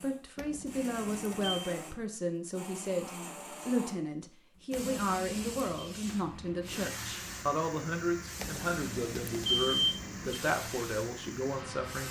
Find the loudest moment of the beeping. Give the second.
10 s.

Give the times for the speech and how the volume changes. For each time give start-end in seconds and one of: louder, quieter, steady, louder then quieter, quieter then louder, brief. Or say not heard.
0.0-12.0 steady.